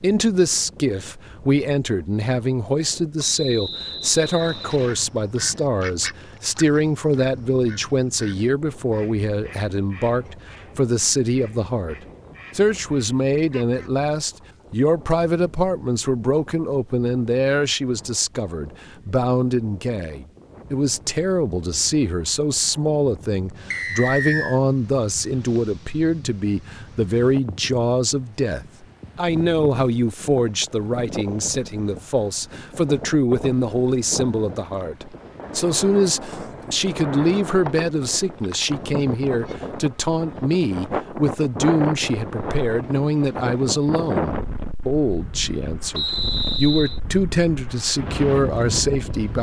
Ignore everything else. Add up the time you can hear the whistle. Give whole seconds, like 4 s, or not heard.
4 s.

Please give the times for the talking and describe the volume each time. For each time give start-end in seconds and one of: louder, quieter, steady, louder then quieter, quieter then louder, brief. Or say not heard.
0.0-11.9 steady
12.6-49.3 steady.